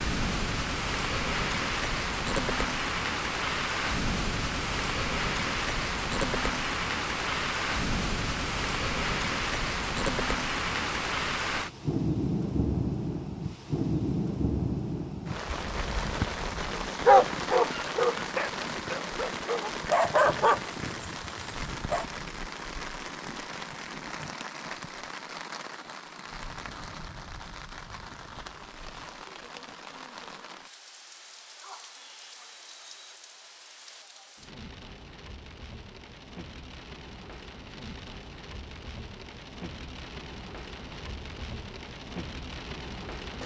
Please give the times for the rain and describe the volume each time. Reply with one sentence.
You can hear the rain from 0.0 to 43.4 s, getting quieter.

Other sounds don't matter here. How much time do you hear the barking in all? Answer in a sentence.
The barking can be heard for 5 seconds in total.